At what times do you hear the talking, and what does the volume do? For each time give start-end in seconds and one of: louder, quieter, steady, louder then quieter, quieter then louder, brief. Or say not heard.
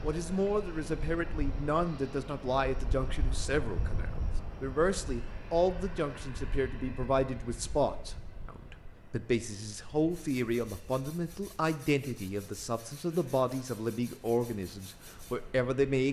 0.0-16.0 steady.